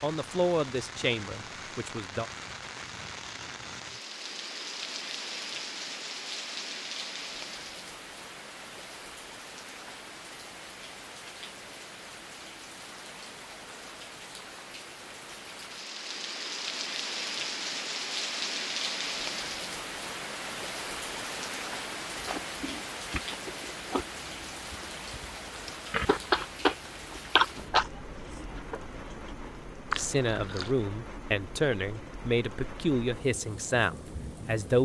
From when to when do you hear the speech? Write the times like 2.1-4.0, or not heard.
0.0-2.2, 29.9-34.8.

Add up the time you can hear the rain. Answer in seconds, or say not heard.
35 s.